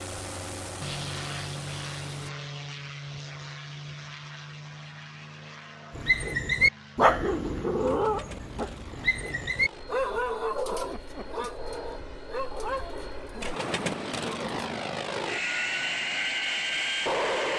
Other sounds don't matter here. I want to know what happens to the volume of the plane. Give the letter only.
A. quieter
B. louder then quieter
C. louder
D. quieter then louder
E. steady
D.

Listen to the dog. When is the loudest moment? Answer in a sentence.
The loudest moment of the dog is at 7 seconds.